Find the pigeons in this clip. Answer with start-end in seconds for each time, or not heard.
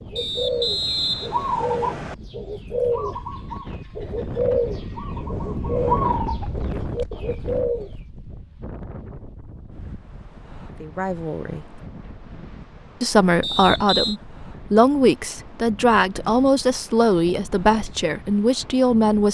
0.1-7.9.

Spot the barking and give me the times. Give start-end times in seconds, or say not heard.
not heard.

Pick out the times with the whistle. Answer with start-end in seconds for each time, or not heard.
0.1-2.1, 13.4-14.2.